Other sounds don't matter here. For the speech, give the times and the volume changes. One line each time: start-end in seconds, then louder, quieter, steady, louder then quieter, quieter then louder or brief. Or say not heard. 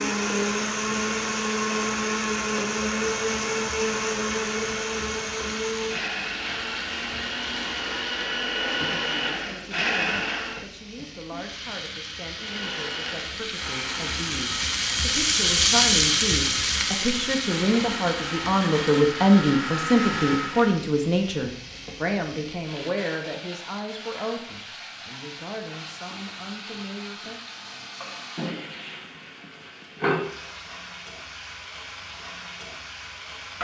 8.8-27.4 louder then quieter.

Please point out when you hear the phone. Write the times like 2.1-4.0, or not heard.
not heard.